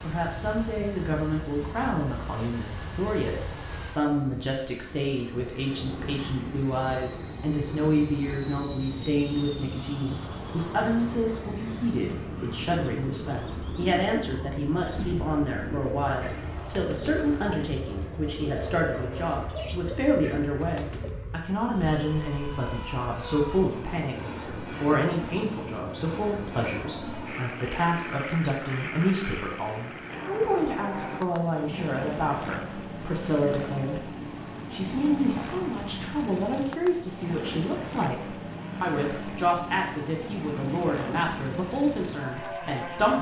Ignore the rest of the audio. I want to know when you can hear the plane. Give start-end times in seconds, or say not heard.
0.0-43.1.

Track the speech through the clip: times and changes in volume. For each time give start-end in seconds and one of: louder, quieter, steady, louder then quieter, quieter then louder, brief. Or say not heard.
0.0-43.1 steady.